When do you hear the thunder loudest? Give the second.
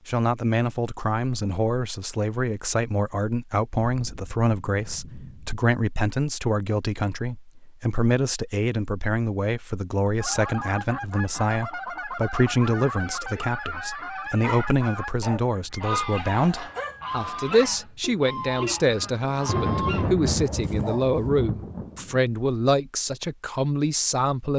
20 s.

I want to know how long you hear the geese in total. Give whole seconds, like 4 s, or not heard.
10 s.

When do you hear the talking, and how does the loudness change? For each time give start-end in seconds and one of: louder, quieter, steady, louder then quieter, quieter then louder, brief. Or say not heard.
0.1-24.5 steady.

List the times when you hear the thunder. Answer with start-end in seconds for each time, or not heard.
3.9-5.5, 19.0-22.2.